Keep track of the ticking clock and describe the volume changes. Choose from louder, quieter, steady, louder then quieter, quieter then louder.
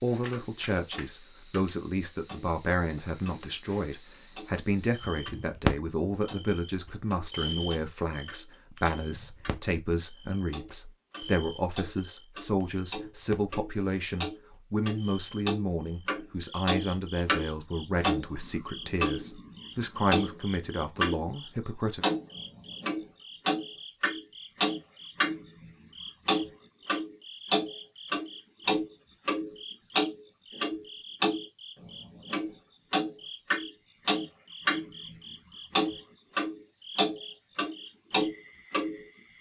louder.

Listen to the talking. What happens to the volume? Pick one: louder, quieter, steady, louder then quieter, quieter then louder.
steady.